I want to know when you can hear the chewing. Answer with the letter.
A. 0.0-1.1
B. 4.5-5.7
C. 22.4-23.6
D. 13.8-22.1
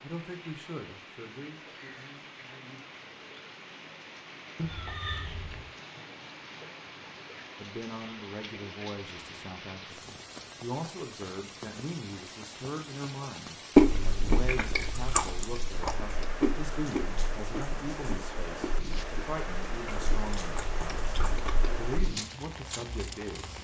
D.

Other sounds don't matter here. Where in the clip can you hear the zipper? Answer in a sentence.
The zipper can't be heard in this clip.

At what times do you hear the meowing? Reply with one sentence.
The meowing can be heard from 4.5 to 5.7 s.